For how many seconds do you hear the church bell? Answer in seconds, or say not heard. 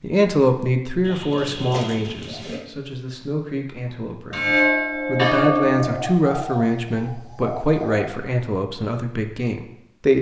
2 s.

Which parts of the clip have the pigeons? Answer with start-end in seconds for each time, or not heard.
1.1-2.6, 5.8-8.2.